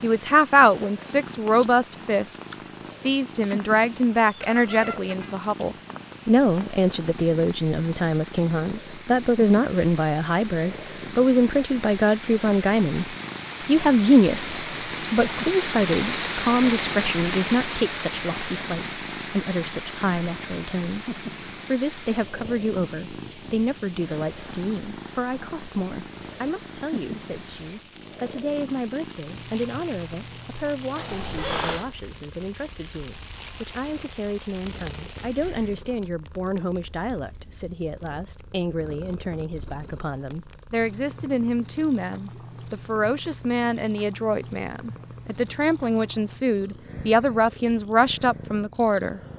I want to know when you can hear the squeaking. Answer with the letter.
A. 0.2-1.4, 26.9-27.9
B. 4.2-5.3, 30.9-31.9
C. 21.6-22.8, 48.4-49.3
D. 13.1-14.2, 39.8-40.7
B.